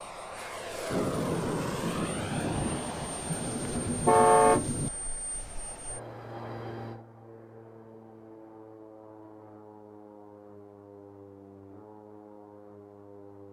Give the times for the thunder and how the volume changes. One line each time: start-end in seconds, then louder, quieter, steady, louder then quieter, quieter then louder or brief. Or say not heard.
0.8-4.9 steady.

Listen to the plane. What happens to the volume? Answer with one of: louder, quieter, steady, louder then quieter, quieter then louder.
quieter.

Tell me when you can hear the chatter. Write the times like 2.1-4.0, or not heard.
not heard.